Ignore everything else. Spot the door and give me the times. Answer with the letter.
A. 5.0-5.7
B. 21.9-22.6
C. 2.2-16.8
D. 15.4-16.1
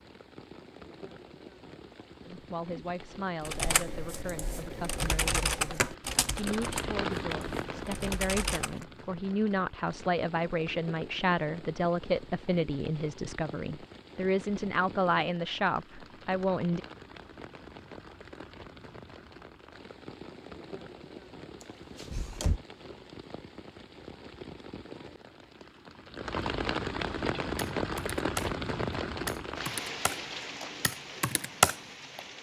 B.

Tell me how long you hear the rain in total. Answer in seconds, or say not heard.
32 s.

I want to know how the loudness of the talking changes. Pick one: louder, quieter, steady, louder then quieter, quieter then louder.
louder.